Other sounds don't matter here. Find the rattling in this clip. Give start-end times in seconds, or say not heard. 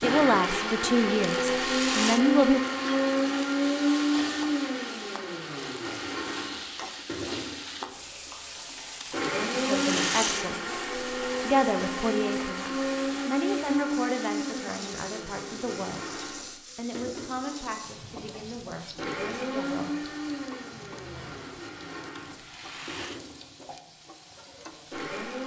1.4-2.2, 9.0-10.5, 22.1-23.2.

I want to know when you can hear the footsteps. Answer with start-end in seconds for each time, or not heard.
not heard.